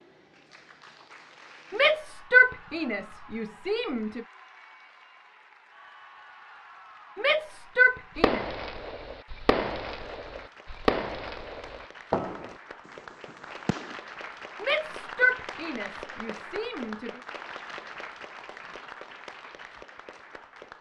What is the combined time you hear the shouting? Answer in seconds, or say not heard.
6 s.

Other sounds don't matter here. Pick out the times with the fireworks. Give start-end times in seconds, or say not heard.
8.2-13.9.